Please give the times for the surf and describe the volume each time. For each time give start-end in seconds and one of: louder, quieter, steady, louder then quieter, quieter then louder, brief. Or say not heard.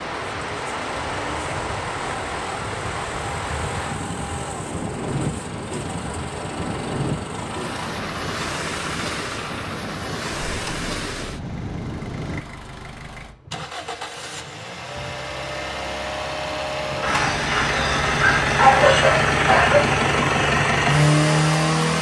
0.0-12.4 steady.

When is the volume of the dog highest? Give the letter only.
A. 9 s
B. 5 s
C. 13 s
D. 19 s
D.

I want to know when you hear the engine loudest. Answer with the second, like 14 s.
21 s.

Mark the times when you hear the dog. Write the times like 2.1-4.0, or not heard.
17.0-19.9.